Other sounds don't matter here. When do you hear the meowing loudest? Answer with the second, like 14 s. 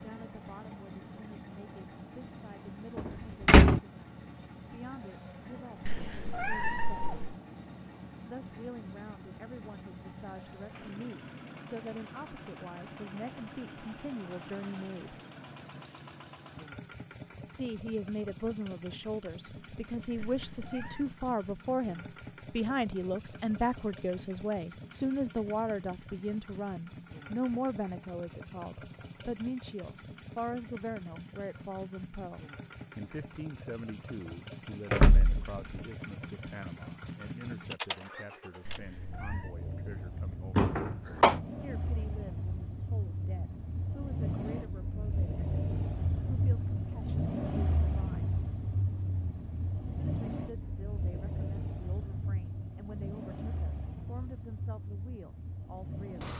7 s.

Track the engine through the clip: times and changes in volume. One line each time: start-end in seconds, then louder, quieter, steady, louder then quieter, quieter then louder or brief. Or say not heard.
0.0-56.3 louder.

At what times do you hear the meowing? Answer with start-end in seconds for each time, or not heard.
5.8-7.3, 20.1-21.1, 38.6-39.5.